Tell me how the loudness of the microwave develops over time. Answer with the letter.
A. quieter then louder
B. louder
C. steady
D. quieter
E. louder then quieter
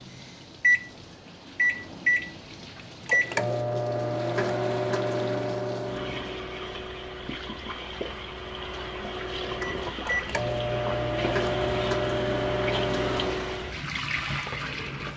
A.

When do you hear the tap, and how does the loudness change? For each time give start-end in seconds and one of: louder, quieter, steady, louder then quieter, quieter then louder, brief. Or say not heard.
0.0-15.1 louder.